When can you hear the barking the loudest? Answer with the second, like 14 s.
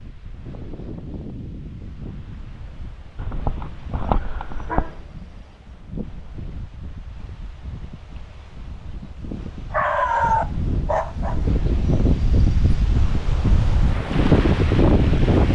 10 s.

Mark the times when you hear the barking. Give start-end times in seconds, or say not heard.
3.1-5.0, 9.7-11.6.